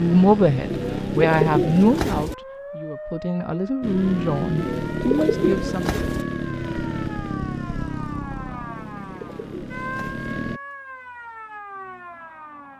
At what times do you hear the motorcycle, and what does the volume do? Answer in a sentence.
The motorcycle can be heard briefly from 0.0 to 2.2 s; and from 3.8 to 10.6 s, getting quieter.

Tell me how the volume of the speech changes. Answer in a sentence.
The loudness of the speech goes down, then up.